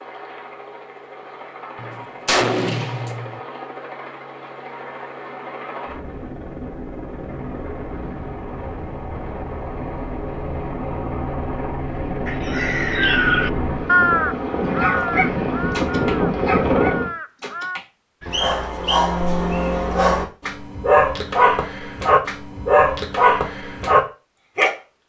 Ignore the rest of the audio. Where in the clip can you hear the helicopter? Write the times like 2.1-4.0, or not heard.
0.0-17.1.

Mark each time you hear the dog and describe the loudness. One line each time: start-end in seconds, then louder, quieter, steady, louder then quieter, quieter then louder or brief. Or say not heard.
14.8-24.7 louder.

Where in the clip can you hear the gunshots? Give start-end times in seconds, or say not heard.
1.8-3.4.